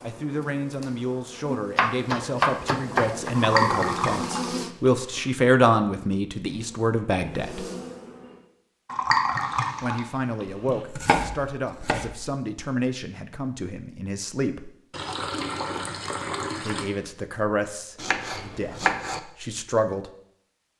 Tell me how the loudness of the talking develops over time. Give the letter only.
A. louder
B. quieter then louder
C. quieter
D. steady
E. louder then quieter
E.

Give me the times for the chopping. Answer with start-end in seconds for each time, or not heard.
1.8-3.3, 10.5-12.3, 17.9-19.2.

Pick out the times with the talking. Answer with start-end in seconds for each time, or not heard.
0.0-7.7, 9.8-14.7, 16.6-20.1.